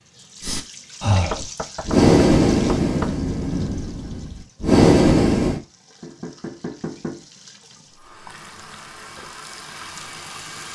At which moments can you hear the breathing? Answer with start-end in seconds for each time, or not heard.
0.4-5.6.